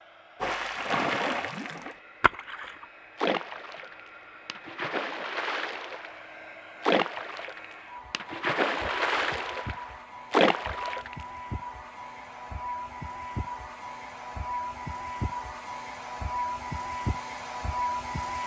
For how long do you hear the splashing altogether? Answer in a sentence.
You can hear the splashing for 11 seconds altogether.